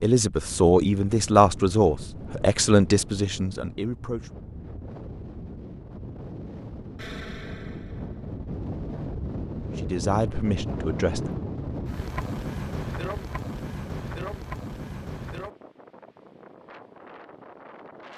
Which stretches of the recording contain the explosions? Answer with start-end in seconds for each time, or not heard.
7.0-8.2.